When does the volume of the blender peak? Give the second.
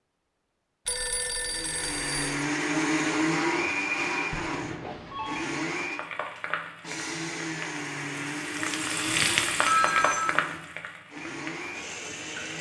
3 s.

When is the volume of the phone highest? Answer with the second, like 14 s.
10 s.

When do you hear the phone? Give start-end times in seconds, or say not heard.
0.8-2.5, 4.3-5.5, 9.1-10.4.